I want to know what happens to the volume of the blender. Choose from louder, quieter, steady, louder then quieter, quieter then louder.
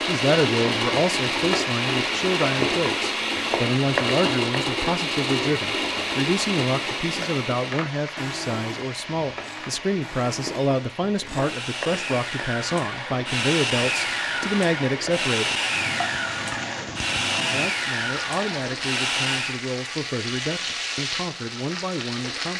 quieter then louder.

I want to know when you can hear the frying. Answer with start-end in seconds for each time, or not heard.
0.0-22.5.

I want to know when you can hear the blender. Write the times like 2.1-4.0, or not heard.
0.0-19.6.